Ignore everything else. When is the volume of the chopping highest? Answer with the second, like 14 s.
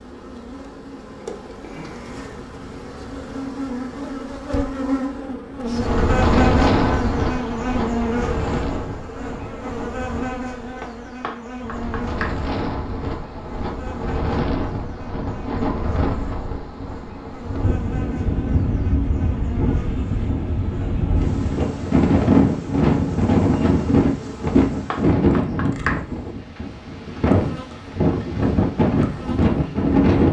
26 s.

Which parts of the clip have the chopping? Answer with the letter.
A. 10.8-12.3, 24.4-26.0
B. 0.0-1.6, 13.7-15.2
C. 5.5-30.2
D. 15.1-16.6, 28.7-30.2
A.